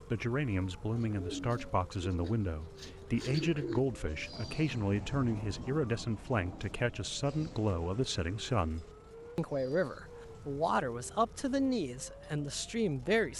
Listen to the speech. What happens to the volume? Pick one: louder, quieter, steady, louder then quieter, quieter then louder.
steady.